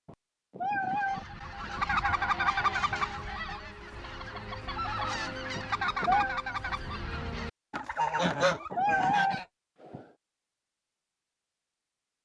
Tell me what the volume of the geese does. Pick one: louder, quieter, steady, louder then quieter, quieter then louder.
quieter then louder.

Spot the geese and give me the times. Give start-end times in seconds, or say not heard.
0.8-9.4.